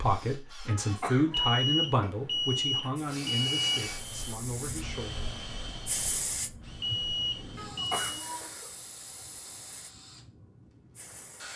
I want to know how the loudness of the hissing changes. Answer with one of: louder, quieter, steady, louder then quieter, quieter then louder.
louder then quieter.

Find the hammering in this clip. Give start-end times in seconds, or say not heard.
not heard.